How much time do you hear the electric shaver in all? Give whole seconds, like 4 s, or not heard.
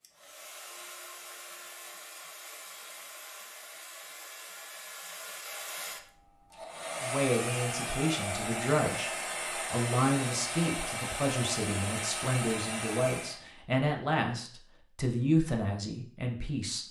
not heard.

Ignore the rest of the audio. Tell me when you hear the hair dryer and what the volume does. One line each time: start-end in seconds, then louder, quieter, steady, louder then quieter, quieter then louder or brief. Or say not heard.
0.0-13.4 louder.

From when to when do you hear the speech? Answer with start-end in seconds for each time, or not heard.
7.0-16.8.